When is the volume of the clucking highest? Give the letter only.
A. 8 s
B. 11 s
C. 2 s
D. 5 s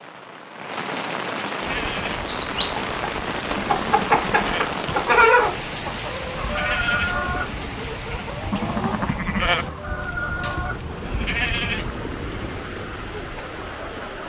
D.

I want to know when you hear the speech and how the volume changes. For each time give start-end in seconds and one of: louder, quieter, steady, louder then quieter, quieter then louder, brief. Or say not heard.
not heard.